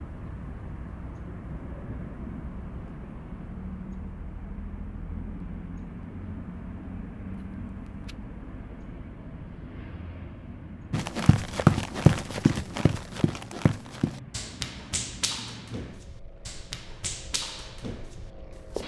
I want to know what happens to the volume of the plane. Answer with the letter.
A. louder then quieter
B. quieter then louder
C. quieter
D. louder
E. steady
C.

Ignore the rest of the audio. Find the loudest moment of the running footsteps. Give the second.
12 s.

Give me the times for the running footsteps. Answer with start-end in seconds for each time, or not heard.
10.9-18.8.